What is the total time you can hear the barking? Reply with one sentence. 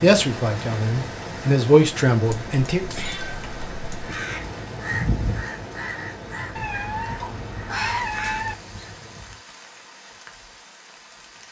You can't hear the barking here.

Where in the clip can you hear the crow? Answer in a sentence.
You can hear the crow from 3.9 to 9.3 s.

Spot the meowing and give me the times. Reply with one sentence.
The meowing can be heard from 2.2 to 4.2 s and from 6.5 to 8.6 s.